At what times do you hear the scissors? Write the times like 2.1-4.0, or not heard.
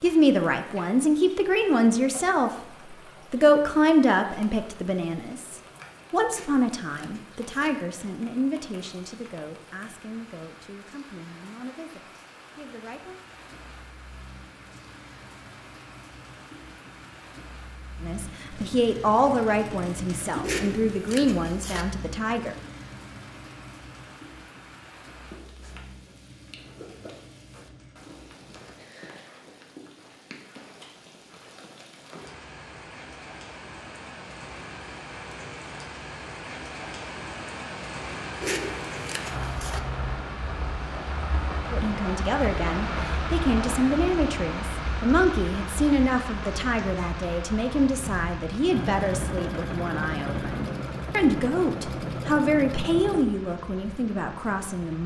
6.3-7.8, 20.4-21.9, 38.4-39.8.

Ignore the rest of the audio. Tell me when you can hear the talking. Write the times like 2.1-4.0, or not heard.
0.0-2.5, 3.3-13.2, 18.0-22.6, 41.7-55.0.